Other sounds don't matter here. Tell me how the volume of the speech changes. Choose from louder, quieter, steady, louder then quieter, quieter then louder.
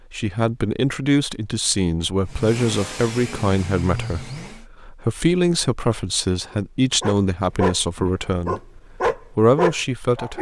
steady.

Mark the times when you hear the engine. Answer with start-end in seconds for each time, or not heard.
2.2-4.7.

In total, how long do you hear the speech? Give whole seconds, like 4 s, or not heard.
10 s.